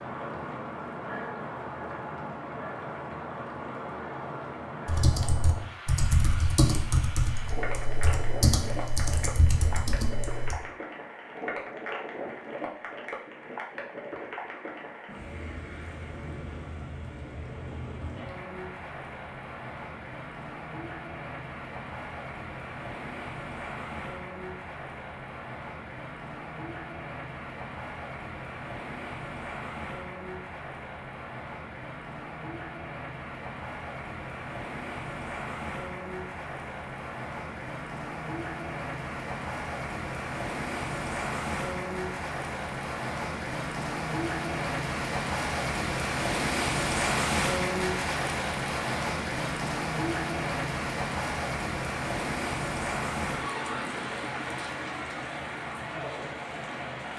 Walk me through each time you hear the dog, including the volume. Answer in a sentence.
You can't hear the dog here.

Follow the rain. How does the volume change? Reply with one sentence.
The loudness of the rain goes up.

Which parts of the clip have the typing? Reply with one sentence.
The typing can be heard from 4.8 to 10.6 s.